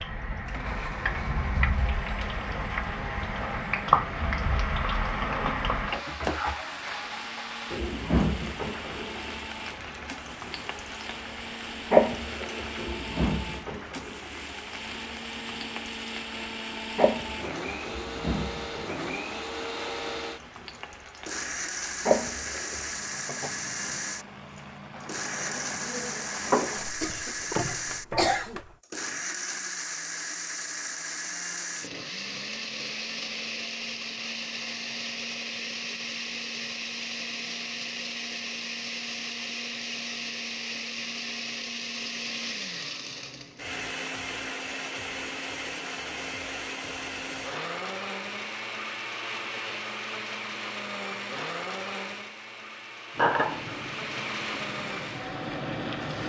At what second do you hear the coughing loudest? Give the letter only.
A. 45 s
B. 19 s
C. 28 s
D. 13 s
C.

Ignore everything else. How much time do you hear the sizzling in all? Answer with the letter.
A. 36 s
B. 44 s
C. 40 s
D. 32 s
D.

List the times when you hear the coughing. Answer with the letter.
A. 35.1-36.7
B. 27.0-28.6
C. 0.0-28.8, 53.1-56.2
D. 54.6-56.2
B.